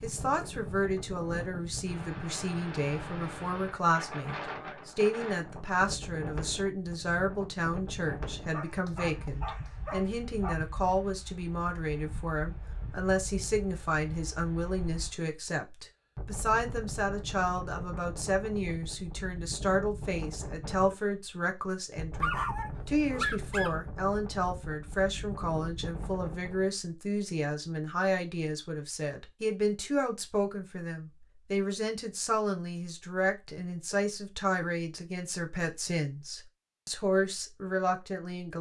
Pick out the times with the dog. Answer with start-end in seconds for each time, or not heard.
8.5-10.6, 22.2-23.7.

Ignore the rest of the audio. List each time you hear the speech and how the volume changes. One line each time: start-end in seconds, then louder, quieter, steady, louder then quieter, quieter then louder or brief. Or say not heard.
0.0-38.5 steady.